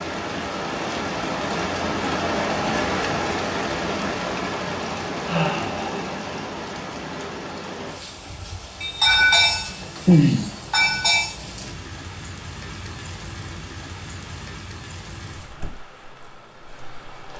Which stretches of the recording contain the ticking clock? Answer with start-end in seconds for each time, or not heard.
not heard.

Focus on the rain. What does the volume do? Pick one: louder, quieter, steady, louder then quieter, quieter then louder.
quieter.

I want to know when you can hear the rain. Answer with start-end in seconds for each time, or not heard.
0.0-17.3.